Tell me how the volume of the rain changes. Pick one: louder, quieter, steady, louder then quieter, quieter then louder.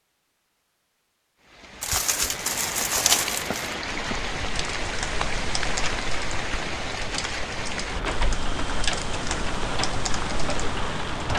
steady.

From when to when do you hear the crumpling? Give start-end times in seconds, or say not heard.
1.8-3.8.